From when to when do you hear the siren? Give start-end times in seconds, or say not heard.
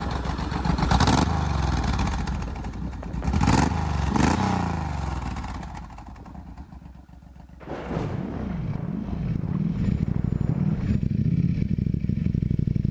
not heard.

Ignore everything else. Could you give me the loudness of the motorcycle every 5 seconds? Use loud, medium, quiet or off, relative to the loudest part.
loud, medium, loud.